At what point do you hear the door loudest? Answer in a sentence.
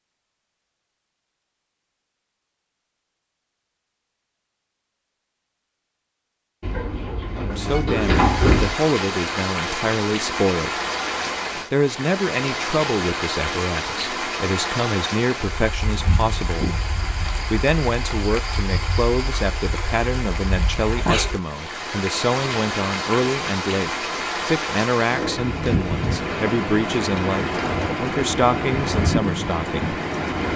The volume of the door peaks at 8 seconds.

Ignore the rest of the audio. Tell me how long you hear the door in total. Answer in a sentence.
You can hear the door for 2 seconds altogether.